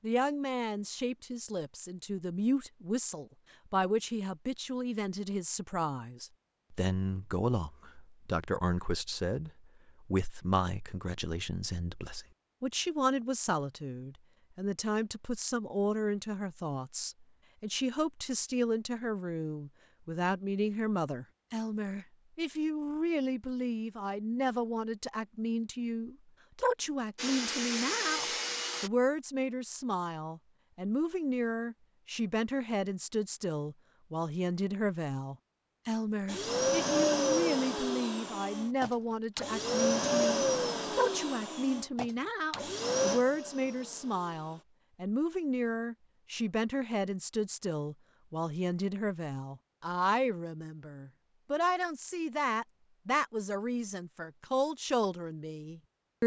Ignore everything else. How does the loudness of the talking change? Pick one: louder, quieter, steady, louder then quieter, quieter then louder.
steady.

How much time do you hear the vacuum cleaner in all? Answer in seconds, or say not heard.
10 s.